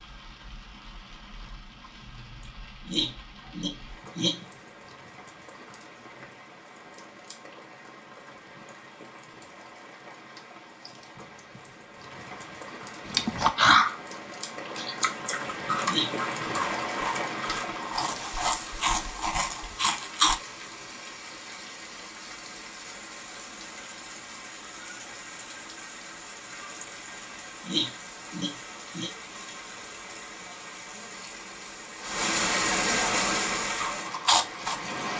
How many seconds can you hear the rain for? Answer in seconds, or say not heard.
35 s.